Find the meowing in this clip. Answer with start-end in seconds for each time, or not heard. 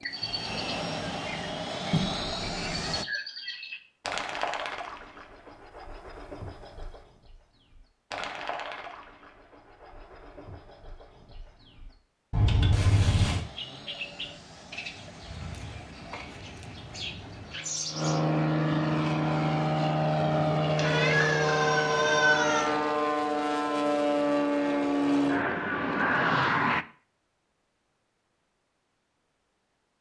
1.9-3.0, 12.3-13.4, 20.8-22.6.